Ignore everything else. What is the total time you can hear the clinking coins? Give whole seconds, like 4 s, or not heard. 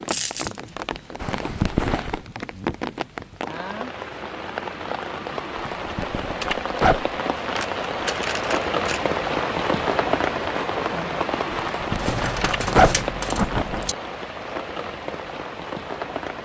4 s.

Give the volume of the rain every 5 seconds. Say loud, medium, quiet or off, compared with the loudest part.
medium, loud, loud, medium.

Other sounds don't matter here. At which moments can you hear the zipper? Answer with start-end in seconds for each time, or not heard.
1.2-2.2, 5.8-7.1, 11.5-13.8.